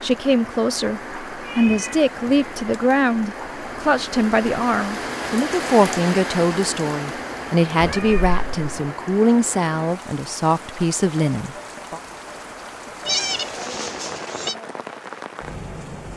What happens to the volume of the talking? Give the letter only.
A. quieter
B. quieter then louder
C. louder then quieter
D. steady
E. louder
D.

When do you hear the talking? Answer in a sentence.
You can hear the talking from 0.0 to 12.0 s.